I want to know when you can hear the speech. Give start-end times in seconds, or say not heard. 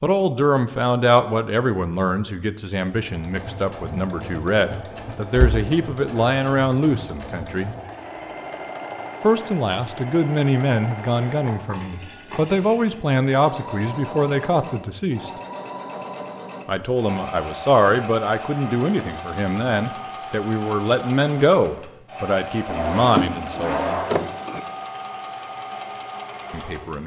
0.0-7.8, 9.2-15.3, 16.6-24.0, 26.5-27.0.